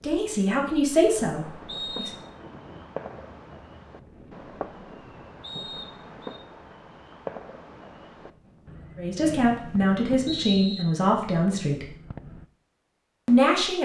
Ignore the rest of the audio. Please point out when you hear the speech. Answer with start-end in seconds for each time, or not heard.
0.0-2.1, 8.9-11.9, 13.2-13.8.